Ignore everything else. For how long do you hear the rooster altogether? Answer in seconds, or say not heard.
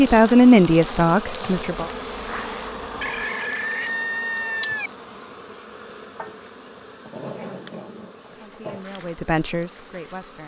2 s.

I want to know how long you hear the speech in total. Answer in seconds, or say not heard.
4 s.